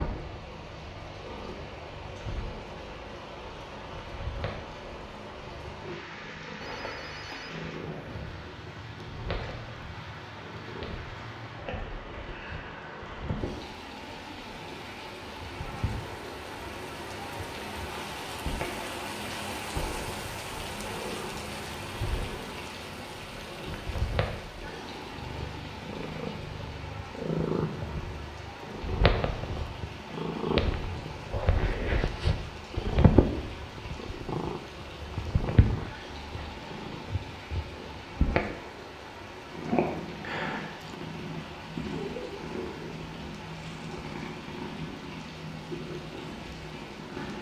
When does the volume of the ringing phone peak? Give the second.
7 s.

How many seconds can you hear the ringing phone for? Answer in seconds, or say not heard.
2 s.